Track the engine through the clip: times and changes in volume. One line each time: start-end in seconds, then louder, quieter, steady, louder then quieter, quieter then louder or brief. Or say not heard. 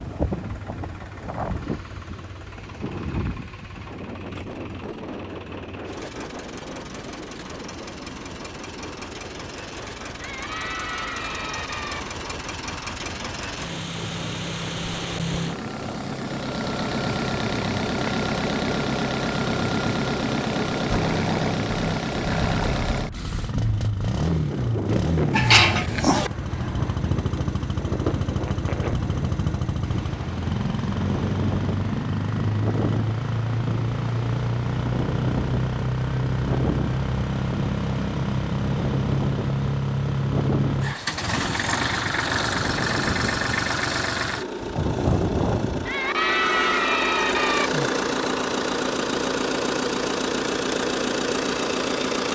0.0-52.2 louder.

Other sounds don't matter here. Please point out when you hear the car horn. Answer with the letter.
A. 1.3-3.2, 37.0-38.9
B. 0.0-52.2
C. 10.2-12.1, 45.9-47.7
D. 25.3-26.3
D.